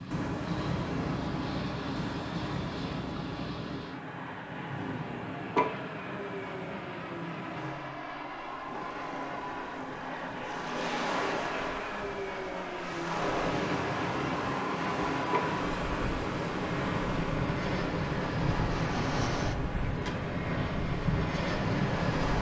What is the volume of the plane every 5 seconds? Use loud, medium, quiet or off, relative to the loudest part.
medium, medium, loud, loud, loud.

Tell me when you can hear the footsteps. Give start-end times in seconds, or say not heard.
not heard.